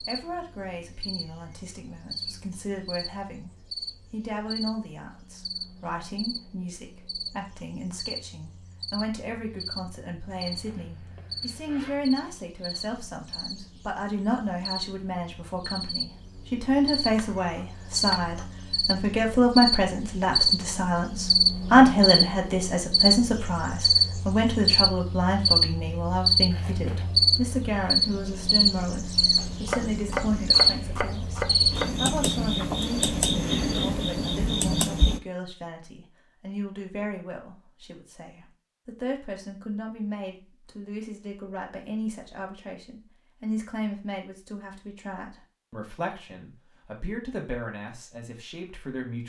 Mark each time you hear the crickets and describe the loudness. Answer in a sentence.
You can hear the crickets from 0.0 to 35.2 s, getting louder.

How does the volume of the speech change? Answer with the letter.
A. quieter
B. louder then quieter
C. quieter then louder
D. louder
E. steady
B.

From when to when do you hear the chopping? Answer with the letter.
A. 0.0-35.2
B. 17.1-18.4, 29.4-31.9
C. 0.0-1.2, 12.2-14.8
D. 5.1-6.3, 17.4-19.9
B.